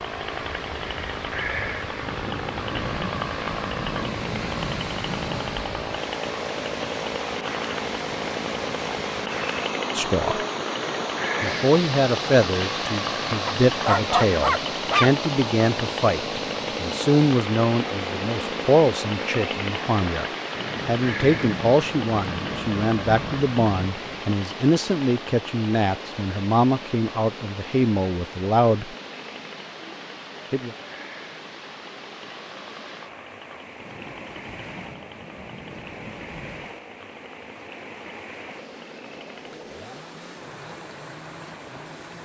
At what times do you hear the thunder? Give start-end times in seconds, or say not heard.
2.0-5.5, 20.6-24.2, 33.8-36.8.